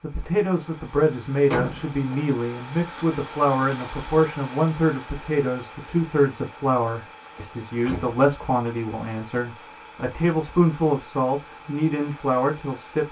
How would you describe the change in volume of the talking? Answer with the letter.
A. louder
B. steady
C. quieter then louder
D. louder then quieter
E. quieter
B.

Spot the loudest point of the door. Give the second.
2 s.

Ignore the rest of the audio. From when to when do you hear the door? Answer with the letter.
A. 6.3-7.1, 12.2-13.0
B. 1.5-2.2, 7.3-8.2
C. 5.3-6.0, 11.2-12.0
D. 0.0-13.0
B.